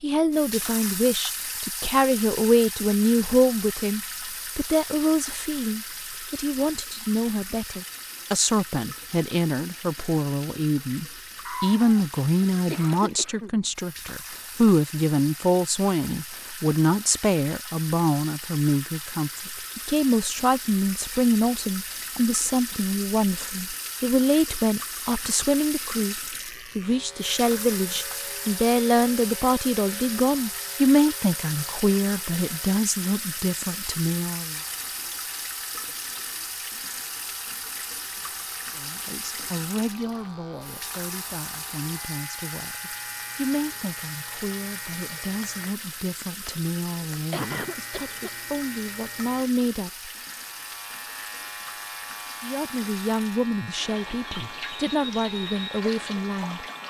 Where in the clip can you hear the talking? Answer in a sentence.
The talking can be heard from 0.0 to 34.6 s, from 38.8 to 50.1 s and from 52.4 to 56.6 s.